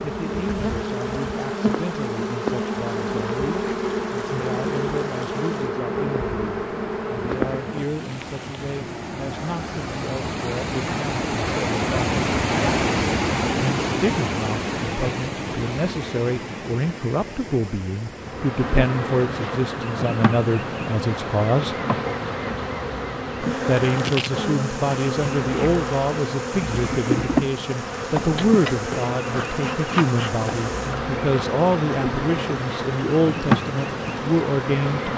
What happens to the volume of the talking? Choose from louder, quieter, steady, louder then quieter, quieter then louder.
louder.